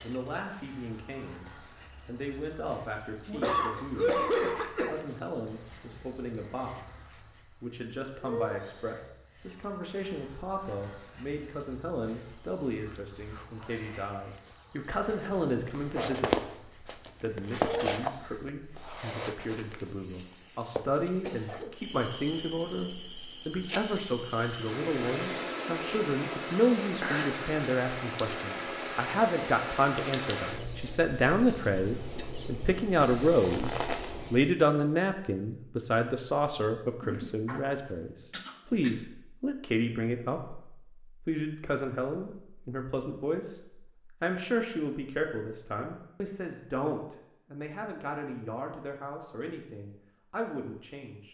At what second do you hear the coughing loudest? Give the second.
4 s.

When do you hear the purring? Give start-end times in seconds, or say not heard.
not heard.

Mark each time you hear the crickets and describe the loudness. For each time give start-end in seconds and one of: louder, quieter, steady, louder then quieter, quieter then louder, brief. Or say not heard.
0.0-34.5 louder.